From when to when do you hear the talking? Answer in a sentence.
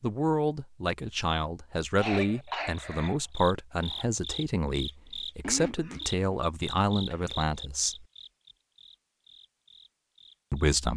You can hear the talking from 0.0 to 8.1 s and from 10.5 to 10.9 s.